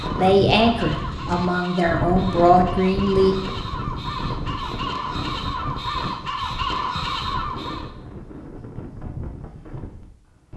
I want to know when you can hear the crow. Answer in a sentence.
The crow can be heard from 0.0 to 7.9 s.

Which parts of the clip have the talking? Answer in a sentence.
The talking can be heard from 0.1 to 3.4 s.